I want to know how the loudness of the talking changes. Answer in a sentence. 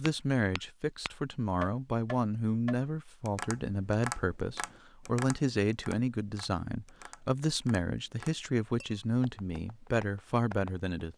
The volume of the talking stays about the same.